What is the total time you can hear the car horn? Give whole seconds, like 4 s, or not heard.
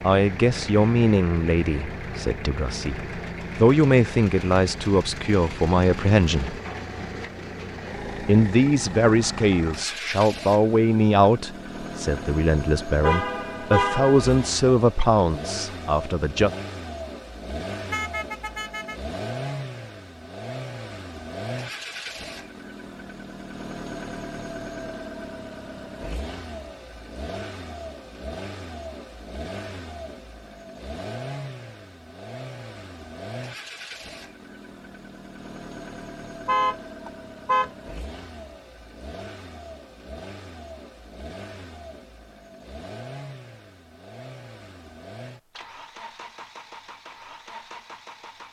4 s.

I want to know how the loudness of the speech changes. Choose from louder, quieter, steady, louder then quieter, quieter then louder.
steady.